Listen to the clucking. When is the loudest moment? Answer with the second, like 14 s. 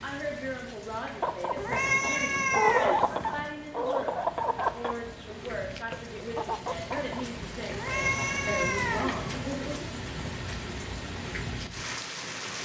3 s.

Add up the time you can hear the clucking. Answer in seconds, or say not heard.
6 s.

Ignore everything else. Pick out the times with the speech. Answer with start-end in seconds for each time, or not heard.
0.0-9.9.